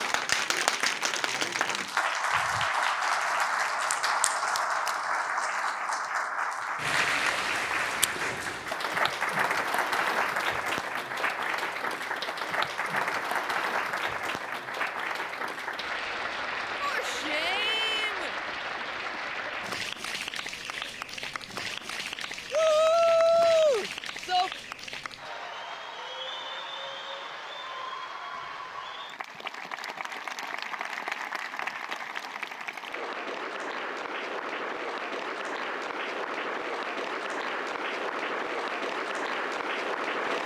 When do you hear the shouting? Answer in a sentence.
You can hear the shouting from 16.8 to 18.4 s and from 22.5 to 24.5 s.